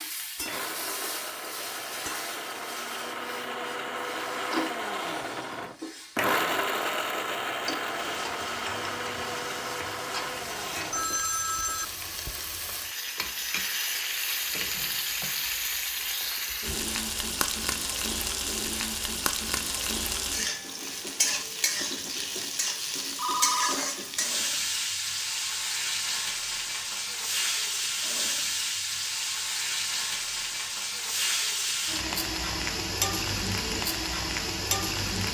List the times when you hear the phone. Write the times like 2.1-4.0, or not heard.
10.9-12.4, 23.1-23.8.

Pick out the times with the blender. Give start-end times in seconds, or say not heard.
0.5-11.1.